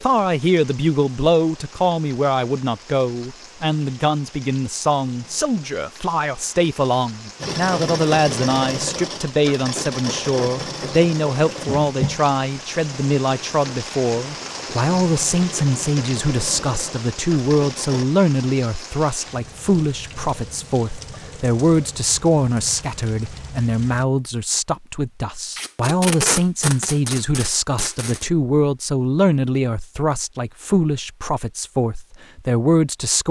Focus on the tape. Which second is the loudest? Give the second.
26 s.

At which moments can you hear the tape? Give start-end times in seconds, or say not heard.
25.6-28.3.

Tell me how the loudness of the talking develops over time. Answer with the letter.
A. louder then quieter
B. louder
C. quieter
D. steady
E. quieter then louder
D.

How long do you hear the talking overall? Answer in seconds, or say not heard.
33 s.